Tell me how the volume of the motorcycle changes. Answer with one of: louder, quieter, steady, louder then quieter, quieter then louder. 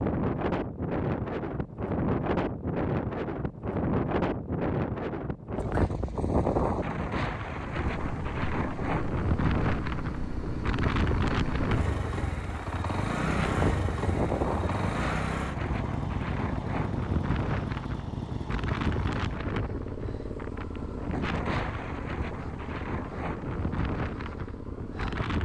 quieter.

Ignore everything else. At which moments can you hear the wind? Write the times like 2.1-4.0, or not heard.
0.0-25.4.